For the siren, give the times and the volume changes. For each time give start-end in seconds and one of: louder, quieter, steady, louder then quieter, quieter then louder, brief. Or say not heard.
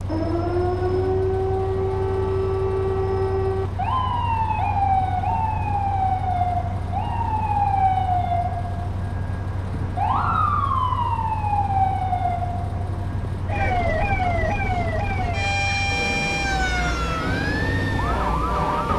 0.0-18.9 steady.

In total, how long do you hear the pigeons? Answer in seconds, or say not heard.
not heard.